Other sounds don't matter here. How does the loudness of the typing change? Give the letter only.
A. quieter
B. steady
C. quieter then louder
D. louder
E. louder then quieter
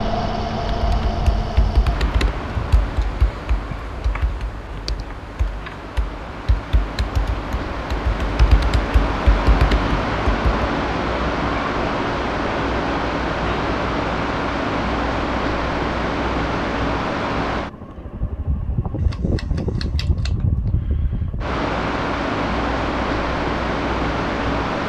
C.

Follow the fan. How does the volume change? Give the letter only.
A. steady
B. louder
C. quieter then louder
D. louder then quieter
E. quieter
B.